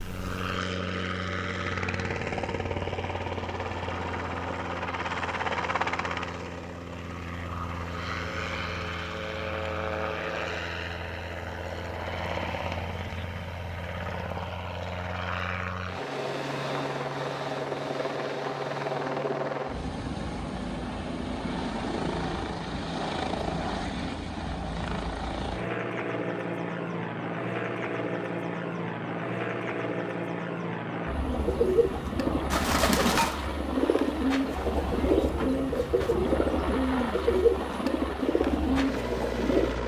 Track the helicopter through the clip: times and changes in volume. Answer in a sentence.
The helicopter can be heard from 0.0 to 39.8 s, at a steady volume.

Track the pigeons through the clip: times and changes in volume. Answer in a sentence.
You can hear the pigeons from 31.1 to 39.8 s, at a steady volume.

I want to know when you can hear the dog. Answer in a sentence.
The dog can't be heard in this clip.